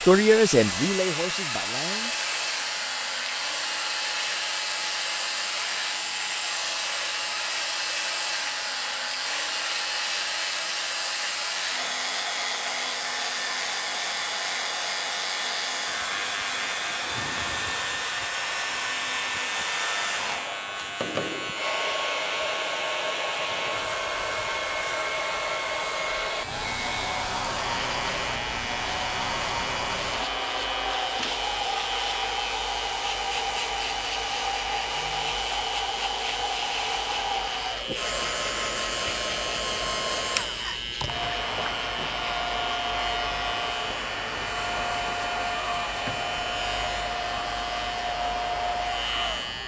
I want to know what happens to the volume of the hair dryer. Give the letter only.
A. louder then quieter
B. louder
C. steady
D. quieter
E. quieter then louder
C.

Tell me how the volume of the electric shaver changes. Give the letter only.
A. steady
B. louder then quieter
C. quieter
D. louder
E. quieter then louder
A.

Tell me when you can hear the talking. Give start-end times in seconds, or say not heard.
0.0-2.1.